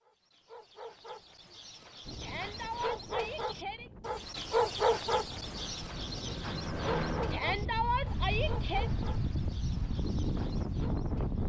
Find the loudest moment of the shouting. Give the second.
8 s.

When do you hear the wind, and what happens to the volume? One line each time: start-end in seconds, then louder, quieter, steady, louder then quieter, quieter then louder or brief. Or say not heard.
2.0-11.4 louder.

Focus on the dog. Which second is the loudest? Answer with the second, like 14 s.
5 s.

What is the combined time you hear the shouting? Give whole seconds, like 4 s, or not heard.
3 s.